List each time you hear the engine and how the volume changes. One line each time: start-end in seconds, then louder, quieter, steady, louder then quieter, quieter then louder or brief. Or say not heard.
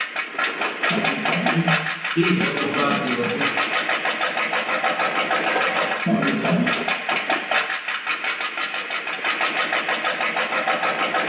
0.0-11.2 steady.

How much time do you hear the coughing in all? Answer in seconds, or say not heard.
3 s.